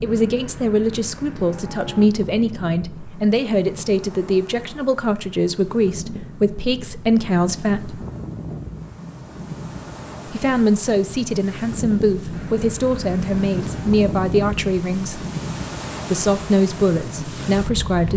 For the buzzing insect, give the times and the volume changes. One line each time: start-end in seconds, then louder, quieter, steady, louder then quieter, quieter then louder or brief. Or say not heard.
not heard.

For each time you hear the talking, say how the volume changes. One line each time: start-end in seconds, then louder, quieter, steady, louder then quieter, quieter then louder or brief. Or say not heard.
0.0-8.1 steady
10.2-15.2 steady
16.1-18.1 brief.